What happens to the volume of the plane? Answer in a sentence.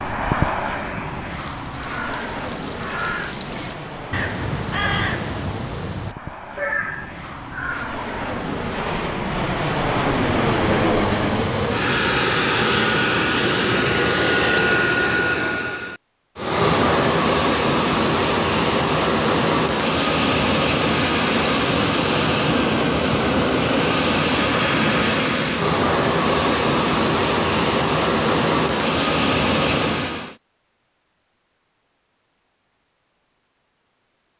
The loudness of the plane goes up.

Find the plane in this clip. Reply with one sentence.
You can hear the plane from 0.0 to 30.4 s.